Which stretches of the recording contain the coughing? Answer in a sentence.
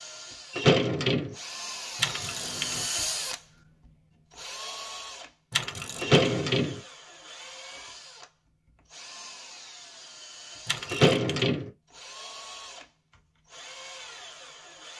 You can't hear the coughing here.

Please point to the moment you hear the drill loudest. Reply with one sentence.
The volume of the drill peaks at 3 seconds.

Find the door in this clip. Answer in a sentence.
The door can be heard from 0.5 to 1.4 s, from 6.0 to 6.8 s and from 10.9 to 11.7 s.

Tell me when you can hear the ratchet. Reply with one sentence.
You can hear the ratchet from 1.9 to 2.9 s, from 5.5 to 6.2 s and from 10.7 to 11.6 s.